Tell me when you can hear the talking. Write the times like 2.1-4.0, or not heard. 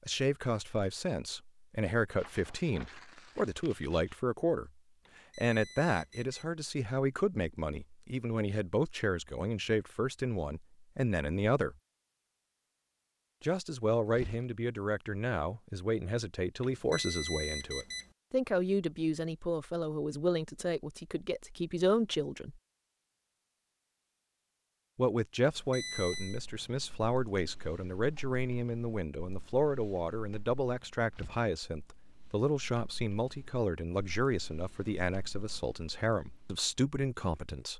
0.0-4.7, 5.3-11.8, 13.4-22.6, 24.9-37.7.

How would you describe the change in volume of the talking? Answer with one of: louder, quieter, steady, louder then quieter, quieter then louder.
steady.